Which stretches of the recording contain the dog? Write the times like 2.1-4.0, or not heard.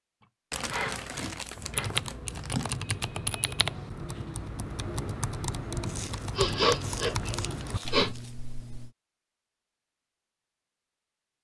not heard.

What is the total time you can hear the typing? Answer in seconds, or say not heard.
7 s.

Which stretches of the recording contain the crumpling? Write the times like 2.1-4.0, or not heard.
0.5-2.8, 5.8-8.3.